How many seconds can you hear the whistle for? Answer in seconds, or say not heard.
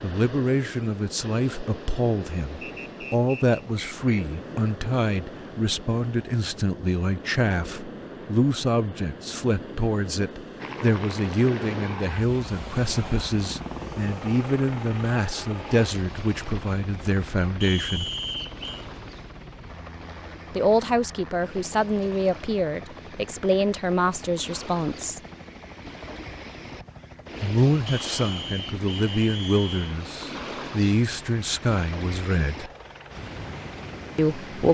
5 s.